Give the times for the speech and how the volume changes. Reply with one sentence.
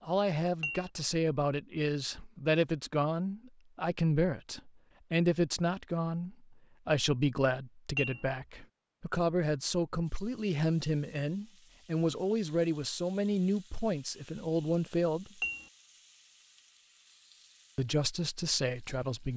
You can hear the speech from 0.0 to 15.4 s, at a steady volume; and briefly from 17.8 to 19.3 s.